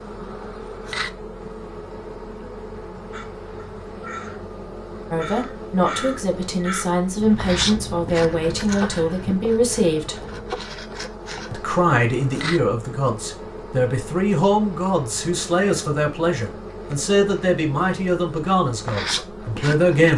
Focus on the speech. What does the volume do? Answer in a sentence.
The volume of the speech stays about the same.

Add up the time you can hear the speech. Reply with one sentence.
The speech can be heard for 14 seconds in total.